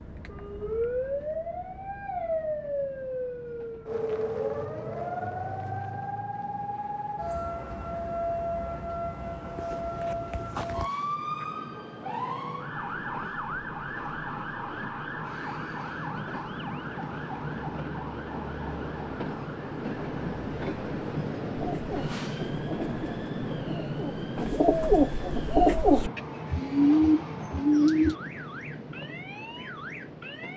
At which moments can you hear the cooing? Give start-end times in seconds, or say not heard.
21.6-28.1.